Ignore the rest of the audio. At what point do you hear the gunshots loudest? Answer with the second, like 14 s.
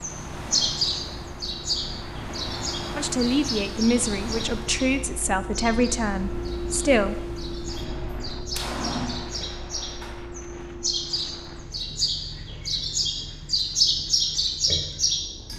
9 s.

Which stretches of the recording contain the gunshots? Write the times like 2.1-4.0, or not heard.
7.7-10.2.